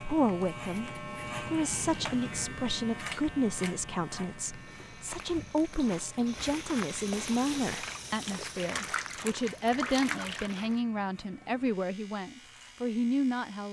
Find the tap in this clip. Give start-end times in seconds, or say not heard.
5.7-10.8.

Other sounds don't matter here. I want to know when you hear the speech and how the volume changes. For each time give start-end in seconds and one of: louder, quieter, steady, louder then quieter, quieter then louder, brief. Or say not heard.
0.0-13.6 steady.